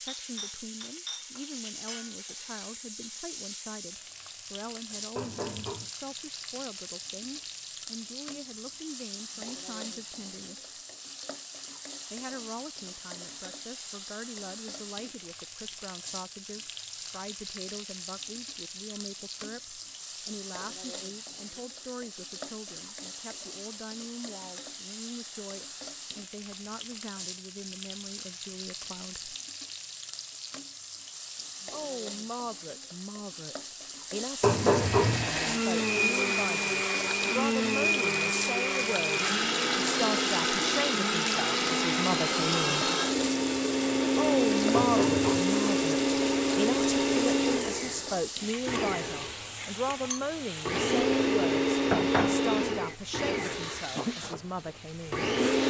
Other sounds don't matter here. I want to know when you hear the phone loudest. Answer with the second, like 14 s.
35 s.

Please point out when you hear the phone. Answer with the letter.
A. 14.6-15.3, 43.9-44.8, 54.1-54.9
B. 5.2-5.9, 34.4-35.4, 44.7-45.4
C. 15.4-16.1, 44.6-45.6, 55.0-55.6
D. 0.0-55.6
B.